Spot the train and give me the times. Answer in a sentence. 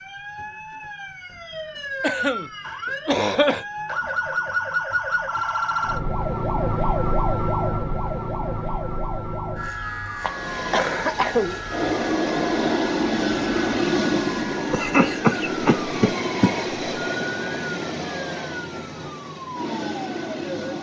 You can hear the train from 10.2 to 20.7 s.